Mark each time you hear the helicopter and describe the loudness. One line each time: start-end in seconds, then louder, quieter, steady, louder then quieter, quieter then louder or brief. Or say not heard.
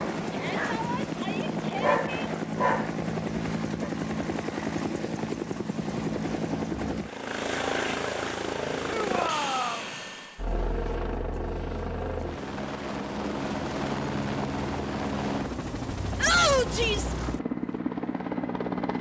0.0-18.9 steady.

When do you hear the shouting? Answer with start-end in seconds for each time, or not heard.
0.3-2.0, 8.8-9.9, 16.1-17.1.